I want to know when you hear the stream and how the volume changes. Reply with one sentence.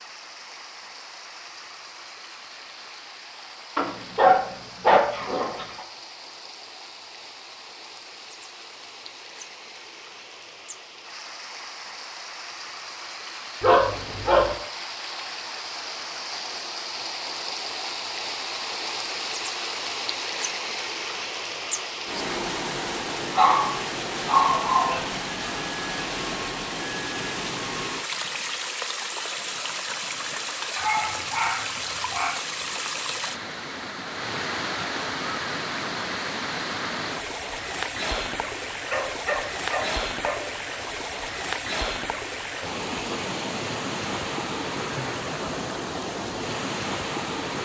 The stream can be heard from 0.0 to 47.5 s, getting louder.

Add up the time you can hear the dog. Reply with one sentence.
You can hear the dog for 8 seconds altogether.